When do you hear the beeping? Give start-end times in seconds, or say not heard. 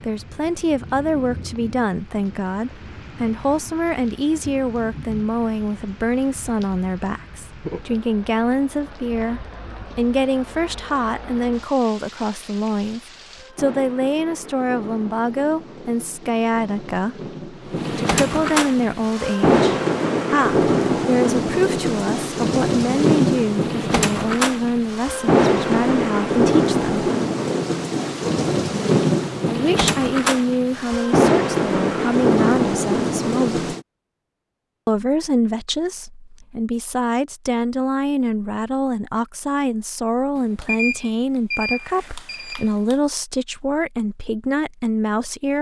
40.4-43.0.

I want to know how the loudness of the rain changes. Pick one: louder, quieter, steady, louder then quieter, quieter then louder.
louder.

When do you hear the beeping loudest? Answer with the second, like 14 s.
41 s.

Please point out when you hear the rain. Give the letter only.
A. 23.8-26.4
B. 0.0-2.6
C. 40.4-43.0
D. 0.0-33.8
D.